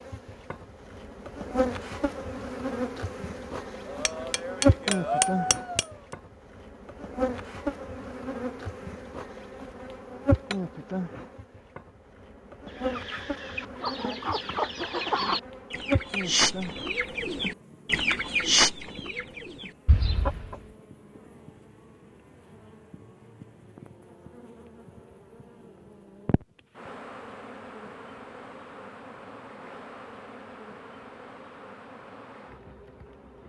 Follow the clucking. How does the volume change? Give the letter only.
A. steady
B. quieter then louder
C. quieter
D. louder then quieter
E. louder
D.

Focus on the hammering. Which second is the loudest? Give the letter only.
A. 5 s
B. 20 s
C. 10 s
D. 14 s
A.